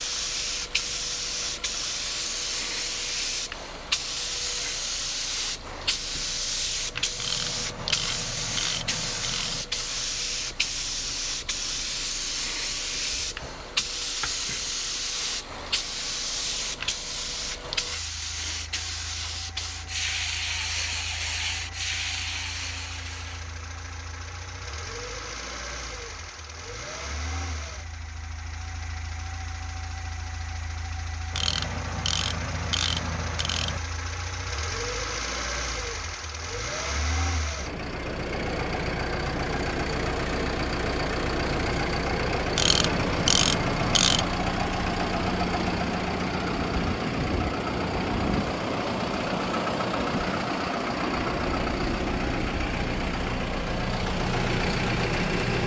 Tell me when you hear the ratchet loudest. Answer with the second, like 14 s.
43 s.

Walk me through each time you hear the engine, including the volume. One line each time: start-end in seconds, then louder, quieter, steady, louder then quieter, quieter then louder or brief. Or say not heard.
0.0-55.6 louder.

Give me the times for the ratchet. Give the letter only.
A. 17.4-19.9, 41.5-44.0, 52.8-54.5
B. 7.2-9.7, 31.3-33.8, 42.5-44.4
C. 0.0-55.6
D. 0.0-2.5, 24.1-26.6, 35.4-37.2
B.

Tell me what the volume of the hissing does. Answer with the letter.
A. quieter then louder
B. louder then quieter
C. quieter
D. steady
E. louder
D.